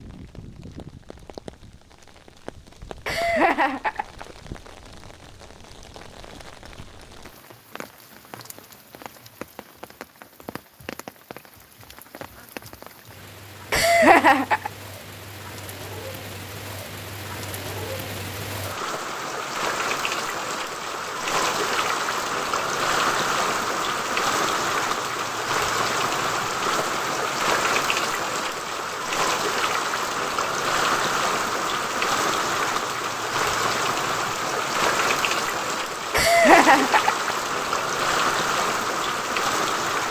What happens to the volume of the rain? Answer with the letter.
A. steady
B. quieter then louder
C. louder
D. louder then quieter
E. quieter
C.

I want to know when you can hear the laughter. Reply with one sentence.
You can hear the laughter from 3.0 to 4.2 s, from 13.7 to 14.7 s and from 36.1 to 37.3 s.